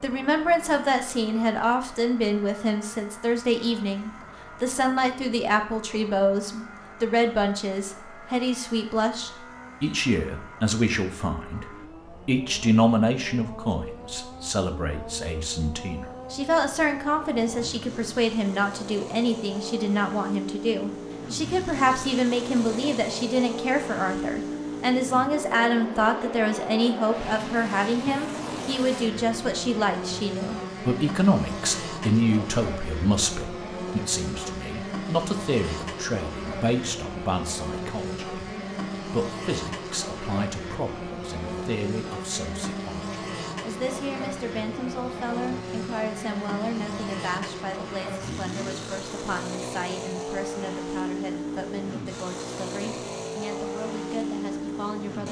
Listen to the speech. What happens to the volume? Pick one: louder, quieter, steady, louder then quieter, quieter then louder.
quieter.